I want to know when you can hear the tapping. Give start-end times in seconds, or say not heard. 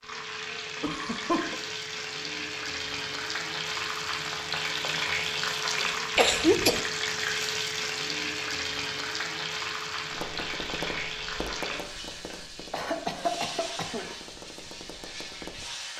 10.1-15.7.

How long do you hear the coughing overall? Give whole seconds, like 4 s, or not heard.
3 s.